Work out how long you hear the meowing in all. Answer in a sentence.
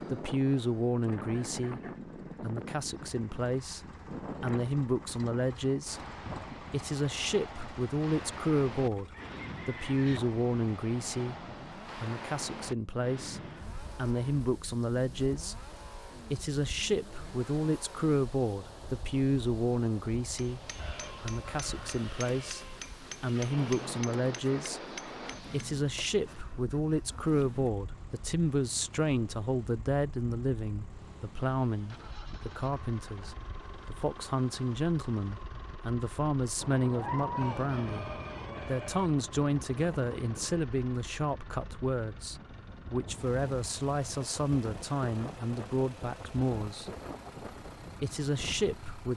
The meowing can be heard for 2 seconds in total.